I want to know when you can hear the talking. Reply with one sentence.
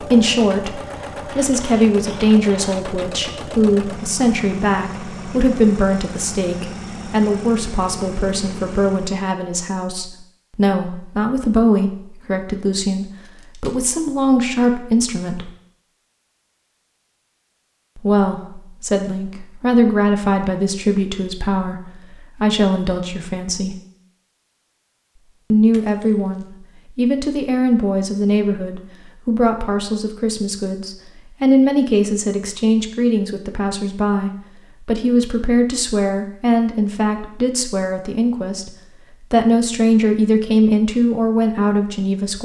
The talking can be heard from 0.0 to 15.5 s, from 17.9 to 23.8 s and from 25.5 to 42.3 s.